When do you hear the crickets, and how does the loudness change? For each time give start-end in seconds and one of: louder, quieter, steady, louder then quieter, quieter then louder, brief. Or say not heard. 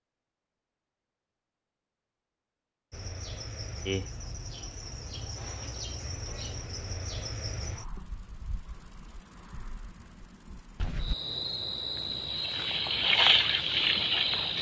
2.9-14.5 quieter then louder.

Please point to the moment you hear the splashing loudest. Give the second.
13 s.